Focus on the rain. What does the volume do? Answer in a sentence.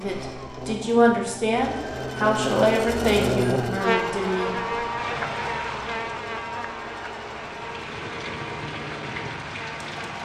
The volume of the rain goes down, then up.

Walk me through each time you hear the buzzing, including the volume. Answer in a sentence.
The buzzing can be heard from 0.0 to 10.2 s, getting louder then quieter.